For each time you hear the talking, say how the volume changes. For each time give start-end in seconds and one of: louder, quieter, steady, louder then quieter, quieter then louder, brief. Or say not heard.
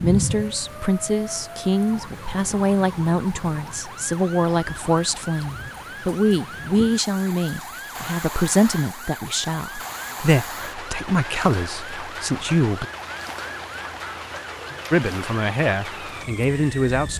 0.0-12.8 steady
14.9-17.1 brief.